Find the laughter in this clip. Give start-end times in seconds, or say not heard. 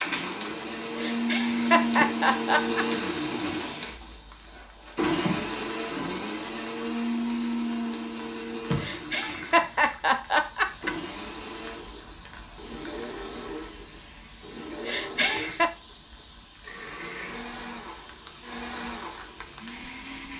0.9-2.9, 8.8-10.9, 14.8-15.7.